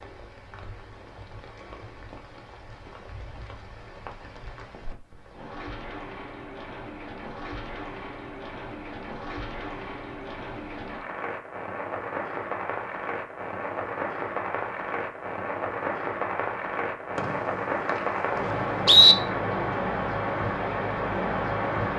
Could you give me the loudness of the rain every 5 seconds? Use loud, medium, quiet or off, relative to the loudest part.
quiet, medium, medium, loud, loud.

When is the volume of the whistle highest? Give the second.
19 s.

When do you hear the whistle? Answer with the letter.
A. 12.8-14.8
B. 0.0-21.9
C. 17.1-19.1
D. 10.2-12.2
C.